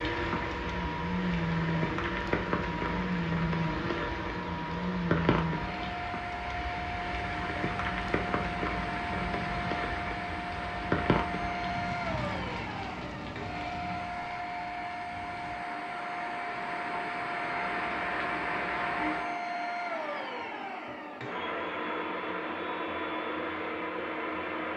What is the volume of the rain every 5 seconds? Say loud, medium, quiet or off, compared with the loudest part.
loud, loud, loud, loud, off.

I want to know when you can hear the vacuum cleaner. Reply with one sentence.
You can hear the vacuum cleaner from 0.0 to 24.7 s.